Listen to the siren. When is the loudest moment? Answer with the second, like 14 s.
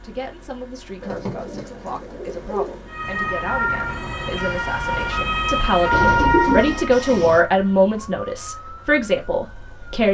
6 s.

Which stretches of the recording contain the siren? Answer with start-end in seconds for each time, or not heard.
2.9-10.0.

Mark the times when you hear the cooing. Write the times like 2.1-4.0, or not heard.
1.0-2.9, 5.9-7.4.